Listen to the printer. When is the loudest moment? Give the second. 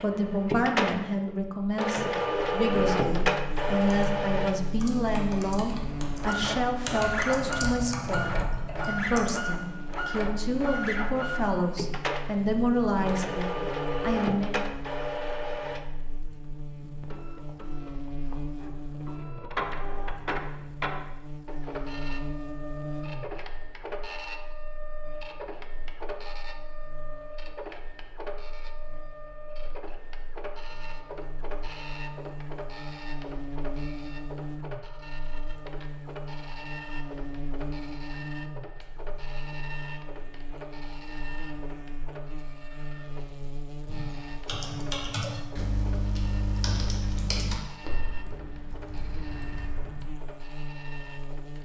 3 s.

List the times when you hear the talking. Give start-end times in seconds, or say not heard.
0.0-14.6.